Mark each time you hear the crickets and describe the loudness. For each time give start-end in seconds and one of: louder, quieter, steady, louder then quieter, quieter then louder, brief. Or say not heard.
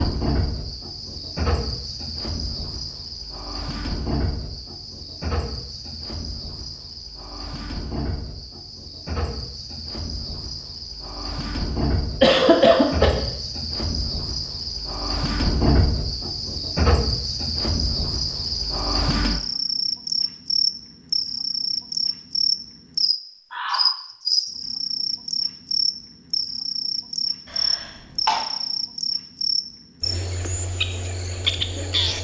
0.0-32.1 louder.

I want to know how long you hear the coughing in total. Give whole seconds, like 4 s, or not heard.
2 s.